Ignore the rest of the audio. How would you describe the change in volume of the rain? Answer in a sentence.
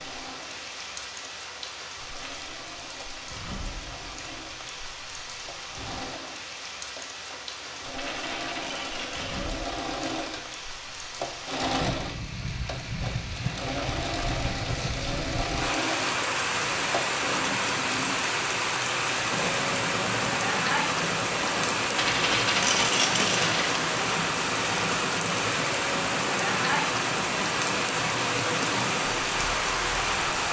The volume of the rain goes up.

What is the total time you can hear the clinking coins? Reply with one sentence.
You can hear the clinking coins for 3 seconds altogether.